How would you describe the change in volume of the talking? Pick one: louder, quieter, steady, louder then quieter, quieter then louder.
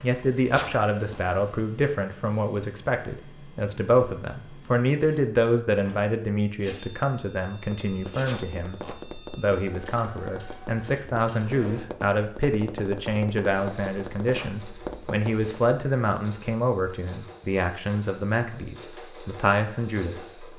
steady.